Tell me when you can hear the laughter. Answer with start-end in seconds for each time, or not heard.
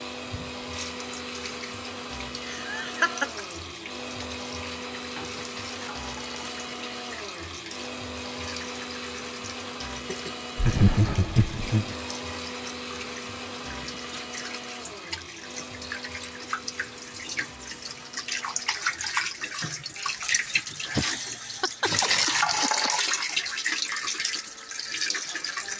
2.4-3.4, 10.6-11.9, 20.9-22.9.